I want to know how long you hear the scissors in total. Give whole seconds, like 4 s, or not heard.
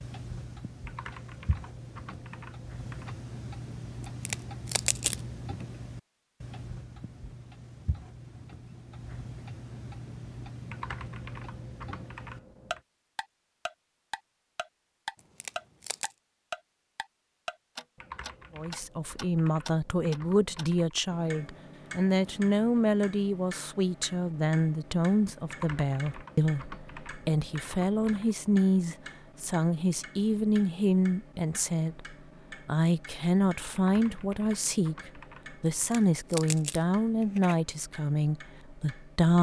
4 s.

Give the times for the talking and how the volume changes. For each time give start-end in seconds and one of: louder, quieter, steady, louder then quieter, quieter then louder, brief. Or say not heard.
18.6-39.3 steady.